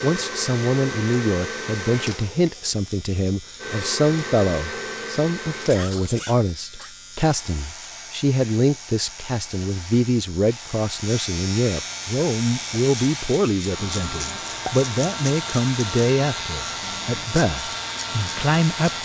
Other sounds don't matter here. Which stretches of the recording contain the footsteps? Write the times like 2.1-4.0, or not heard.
not heard.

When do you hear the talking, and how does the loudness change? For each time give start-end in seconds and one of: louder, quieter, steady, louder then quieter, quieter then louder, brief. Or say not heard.
0.0-19.0 steady.